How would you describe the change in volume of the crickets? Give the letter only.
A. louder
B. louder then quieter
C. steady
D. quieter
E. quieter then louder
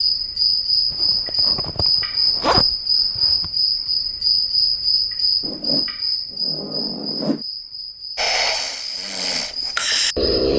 D.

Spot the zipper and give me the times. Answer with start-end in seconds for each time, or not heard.
0.9-3.5, 5.4-7.5.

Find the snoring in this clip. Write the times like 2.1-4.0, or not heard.
8.2-10.5.